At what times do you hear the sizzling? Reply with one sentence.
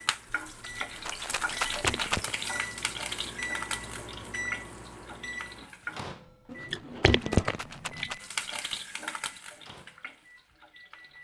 The sizzling can be heard from 0.0 to 6.0 s and from 8.2 to 11.1 s.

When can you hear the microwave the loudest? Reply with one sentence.
The volume of the microwave peaks at 4 seconds.